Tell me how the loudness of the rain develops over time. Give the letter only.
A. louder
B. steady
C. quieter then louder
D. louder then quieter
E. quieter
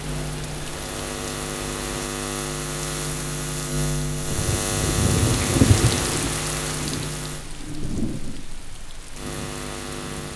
D.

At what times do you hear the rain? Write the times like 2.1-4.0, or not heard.
0.0-10.3.